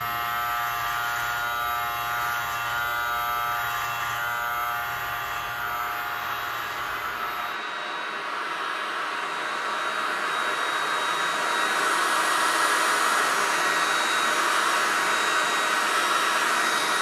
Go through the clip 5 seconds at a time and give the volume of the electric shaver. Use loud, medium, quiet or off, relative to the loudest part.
loud, medium, off, off.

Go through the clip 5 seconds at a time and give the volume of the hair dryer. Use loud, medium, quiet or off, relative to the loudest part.
quiet, medium, loud, loud.